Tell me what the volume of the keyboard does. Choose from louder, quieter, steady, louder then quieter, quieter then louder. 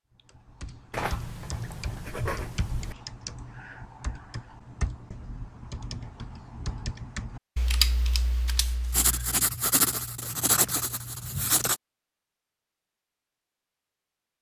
louder.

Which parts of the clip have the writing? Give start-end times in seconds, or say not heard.
0.9-3.0, 8.9-11.8.